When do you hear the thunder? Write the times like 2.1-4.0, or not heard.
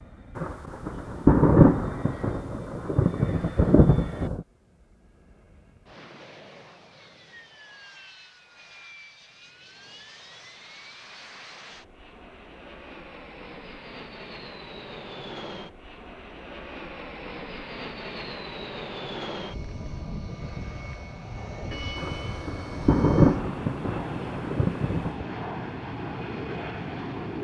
0.3-4.5, 21.9-25.2.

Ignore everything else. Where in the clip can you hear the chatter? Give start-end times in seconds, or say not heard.
not heard.